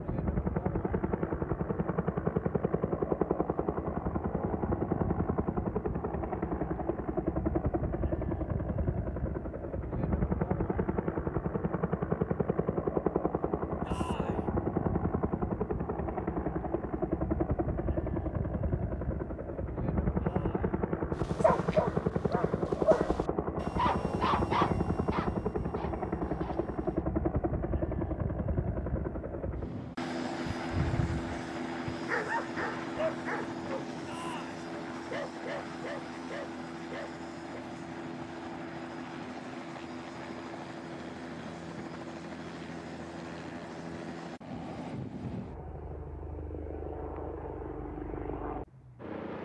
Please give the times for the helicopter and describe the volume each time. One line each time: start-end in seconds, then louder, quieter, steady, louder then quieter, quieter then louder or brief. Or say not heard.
0.0-49.4 quieter.